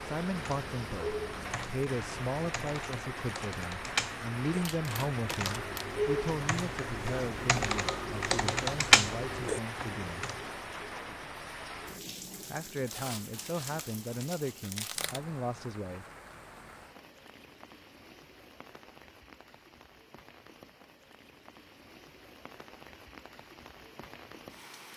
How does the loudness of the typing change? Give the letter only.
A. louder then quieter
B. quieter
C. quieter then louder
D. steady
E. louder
E.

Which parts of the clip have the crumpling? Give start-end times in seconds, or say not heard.
4.6-5.8, 12.8-15.2.